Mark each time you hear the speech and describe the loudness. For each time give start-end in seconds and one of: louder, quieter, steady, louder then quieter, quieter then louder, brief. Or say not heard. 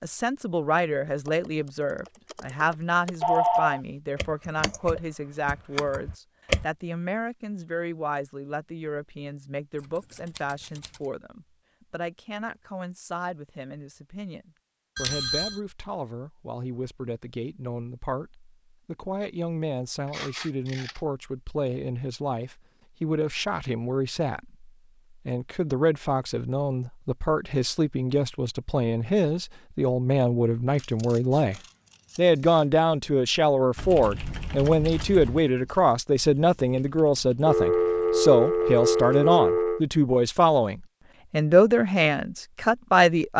0.0-43.3 quieter then louder.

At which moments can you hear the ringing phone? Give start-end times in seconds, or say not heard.
3.2-3.8, 14.9-15.6, 37.5-39.8.